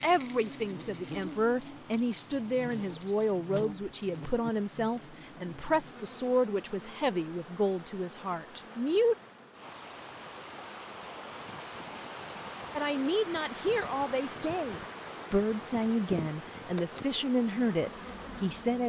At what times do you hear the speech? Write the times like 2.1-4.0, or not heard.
0.0-9.2, 12.8-18.8.